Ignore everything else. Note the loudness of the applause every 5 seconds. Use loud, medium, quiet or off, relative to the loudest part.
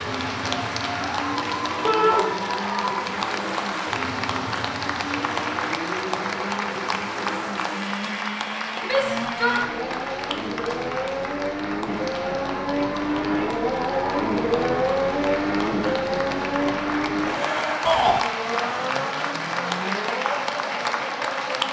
loud, loud, medium, loud, loud.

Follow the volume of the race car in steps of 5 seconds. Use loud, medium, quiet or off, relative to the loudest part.
medium, medium, loud, loud, medium.